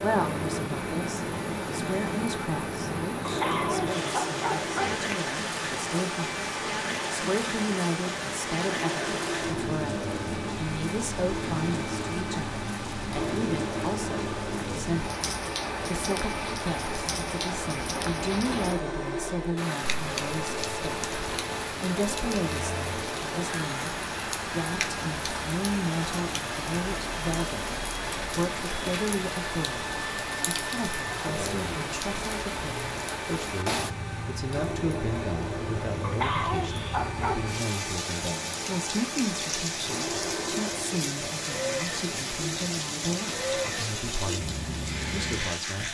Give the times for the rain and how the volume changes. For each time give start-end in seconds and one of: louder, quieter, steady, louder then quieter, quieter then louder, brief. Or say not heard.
0.0-45.8 steady.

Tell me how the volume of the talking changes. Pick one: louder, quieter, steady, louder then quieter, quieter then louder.
steady.